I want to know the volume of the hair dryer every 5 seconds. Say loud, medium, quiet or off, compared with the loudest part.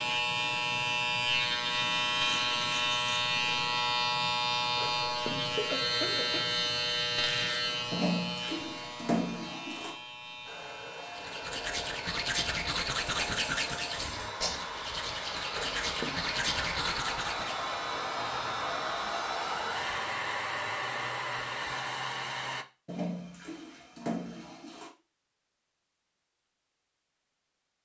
off, off, medium, loud, loud, off.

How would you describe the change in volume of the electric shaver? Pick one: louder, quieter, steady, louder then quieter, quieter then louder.
quieter.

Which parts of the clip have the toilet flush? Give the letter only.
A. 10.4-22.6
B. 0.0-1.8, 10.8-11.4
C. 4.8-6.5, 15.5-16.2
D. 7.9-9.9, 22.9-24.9
D.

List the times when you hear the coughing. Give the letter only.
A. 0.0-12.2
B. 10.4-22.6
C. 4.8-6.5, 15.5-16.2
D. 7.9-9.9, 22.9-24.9
C.